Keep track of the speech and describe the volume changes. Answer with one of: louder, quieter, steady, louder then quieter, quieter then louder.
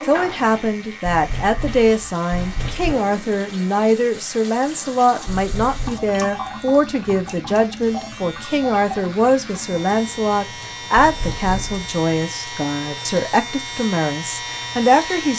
steady.